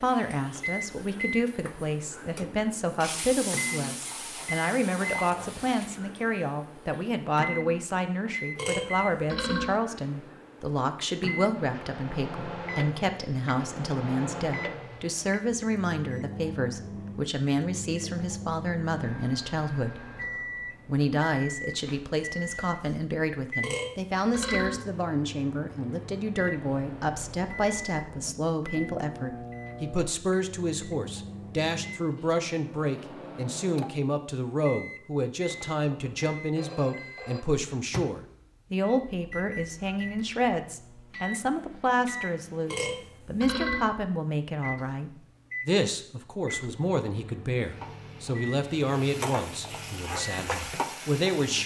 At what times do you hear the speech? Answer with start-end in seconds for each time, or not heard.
0.0-20.0, 20.9-51.6.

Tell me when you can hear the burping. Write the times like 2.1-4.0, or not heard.
8.6-9.8, 23.6-24.8, 42.6-43.9.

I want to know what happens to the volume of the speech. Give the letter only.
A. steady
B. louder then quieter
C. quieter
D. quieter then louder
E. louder
A.